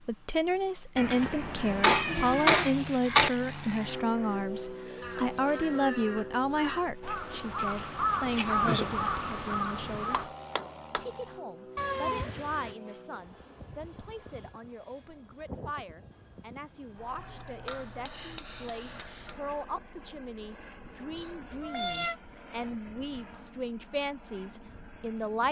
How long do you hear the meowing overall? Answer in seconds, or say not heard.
4 s.